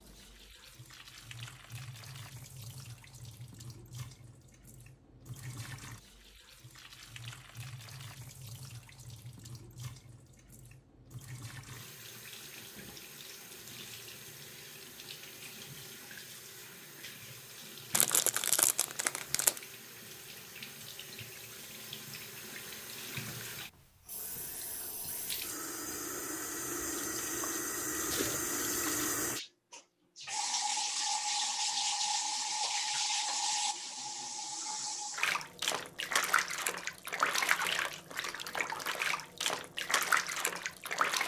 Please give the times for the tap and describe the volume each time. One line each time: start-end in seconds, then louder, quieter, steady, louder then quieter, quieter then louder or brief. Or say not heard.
0.0-41.2 louder.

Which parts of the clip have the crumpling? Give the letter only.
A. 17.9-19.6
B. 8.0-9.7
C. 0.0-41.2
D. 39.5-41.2
A.